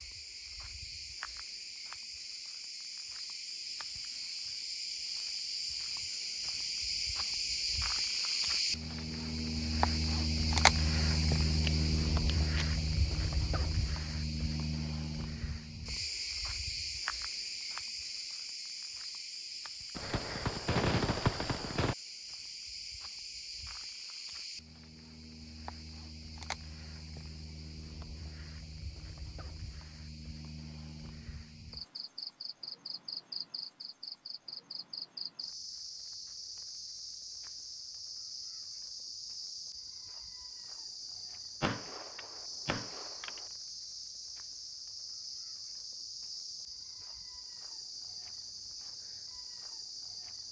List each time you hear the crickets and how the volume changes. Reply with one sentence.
The crickets can be heard from 0.0 to 50.4 s, getting quieter.